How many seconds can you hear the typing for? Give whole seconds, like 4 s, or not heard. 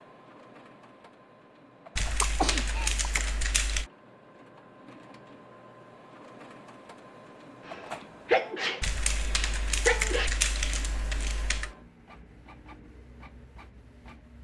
5 s.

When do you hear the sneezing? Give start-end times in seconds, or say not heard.
2.2-3.2, 7.7-10.3.